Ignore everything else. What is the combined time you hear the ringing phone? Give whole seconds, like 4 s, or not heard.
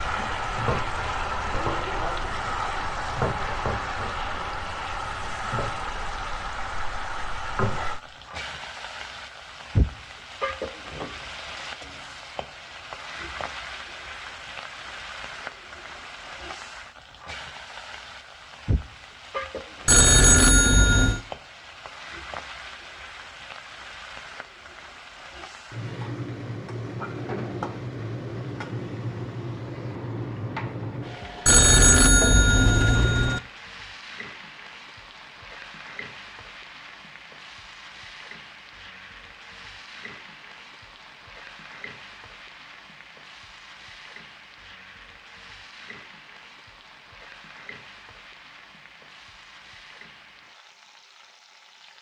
3 s.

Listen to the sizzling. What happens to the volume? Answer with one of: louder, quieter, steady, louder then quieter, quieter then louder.
quieter.